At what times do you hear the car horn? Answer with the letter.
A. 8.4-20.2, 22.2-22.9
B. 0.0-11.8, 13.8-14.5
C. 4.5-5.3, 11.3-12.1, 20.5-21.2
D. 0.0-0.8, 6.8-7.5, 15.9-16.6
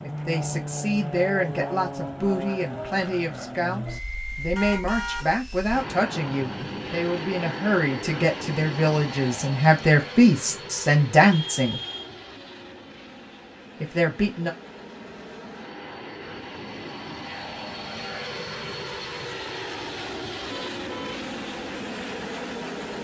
C.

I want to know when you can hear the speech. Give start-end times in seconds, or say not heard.
0.0-11.8, 13.8-14.5.